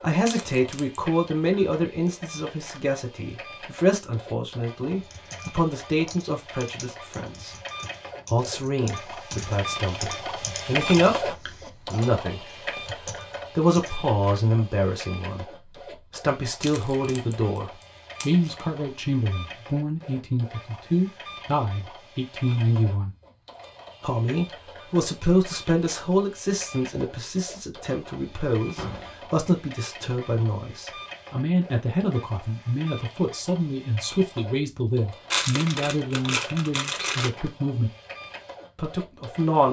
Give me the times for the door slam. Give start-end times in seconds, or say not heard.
28.8-29.2.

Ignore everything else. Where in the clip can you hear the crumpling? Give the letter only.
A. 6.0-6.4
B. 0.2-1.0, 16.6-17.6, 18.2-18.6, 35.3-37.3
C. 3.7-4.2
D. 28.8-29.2
B.